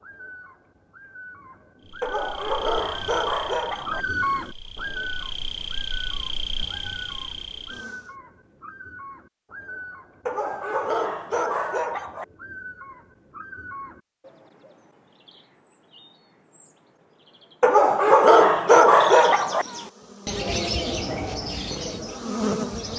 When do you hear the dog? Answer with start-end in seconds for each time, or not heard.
2.0-4.0, 10.2-12.2, 17.6-19.6.